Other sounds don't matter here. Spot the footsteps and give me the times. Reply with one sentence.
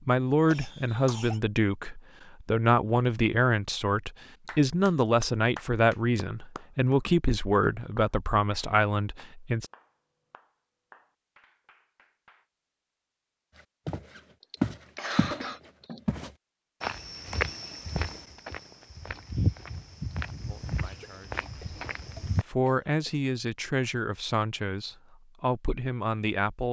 You can hear the footsteps from 13.8 to 15.4 s and from 16.1 to 22.4 s.